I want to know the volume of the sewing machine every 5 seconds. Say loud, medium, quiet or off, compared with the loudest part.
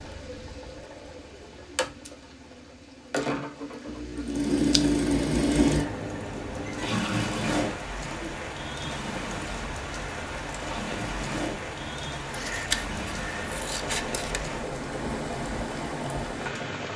loud, loud, medium, medium.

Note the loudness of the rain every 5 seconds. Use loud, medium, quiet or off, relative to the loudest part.
quiet, loud, loud, loud.